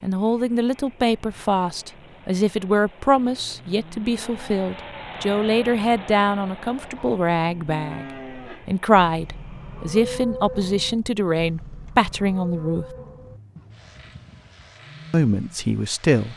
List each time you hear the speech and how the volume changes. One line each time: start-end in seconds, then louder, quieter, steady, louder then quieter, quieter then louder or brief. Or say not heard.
0.0-12.8 steady
15.1-16.3 brief.